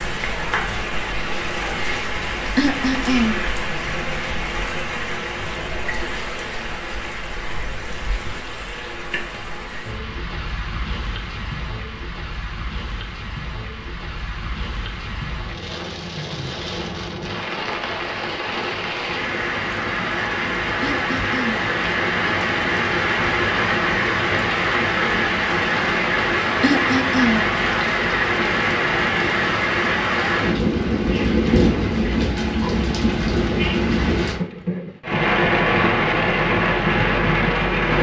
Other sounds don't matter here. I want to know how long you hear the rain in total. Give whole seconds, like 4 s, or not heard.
38 s.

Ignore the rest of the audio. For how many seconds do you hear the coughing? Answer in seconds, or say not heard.
3 s.